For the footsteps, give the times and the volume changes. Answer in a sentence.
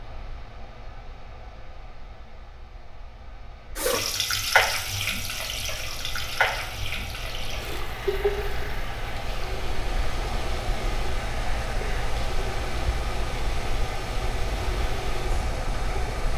You can't hear the footsteps here.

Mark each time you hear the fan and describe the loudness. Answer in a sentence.
You can hear the fan from 0.0 to 16.3 s, getting louder.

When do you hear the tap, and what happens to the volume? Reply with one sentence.
You can hear the tap from 3.8 to 16.1 s, getting quieter.